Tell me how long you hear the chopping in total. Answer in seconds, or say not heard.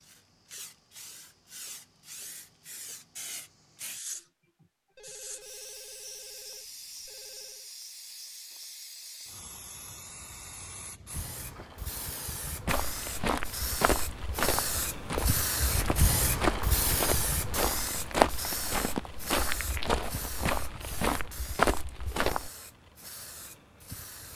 not heard.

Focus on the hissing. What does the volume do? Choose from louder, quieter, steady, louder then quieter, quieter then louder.
louder then quieter.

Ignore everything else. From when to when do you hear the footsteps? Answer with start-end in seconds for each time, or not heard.
12.7-22.5.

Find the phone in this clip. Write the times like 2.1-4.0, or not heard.
5.0-7.7.